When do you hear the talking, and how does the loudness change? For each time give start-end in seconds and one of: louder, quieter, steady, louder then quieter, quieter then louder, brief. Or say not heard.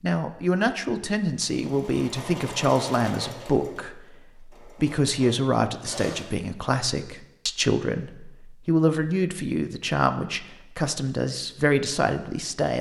0.0-12.7 steady.